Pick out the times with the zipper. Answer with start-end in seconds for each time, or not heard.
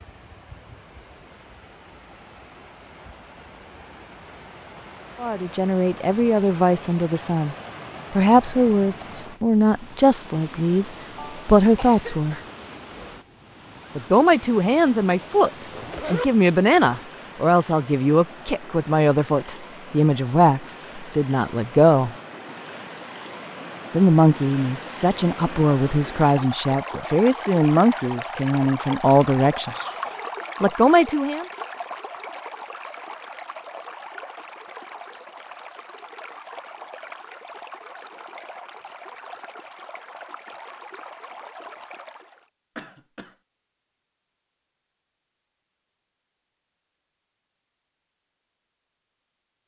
15.7-16.3.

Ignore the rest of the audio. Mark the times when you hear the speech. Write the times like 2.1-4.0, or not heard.
5.2-12.4, 13.9-22.1, 23.9-29.8, 30.6-31.4.